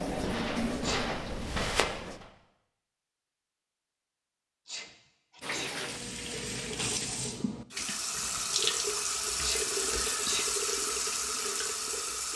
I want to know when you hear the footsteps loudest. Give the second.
2 s.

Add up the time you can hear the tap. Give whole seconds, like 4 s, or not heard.
9 s.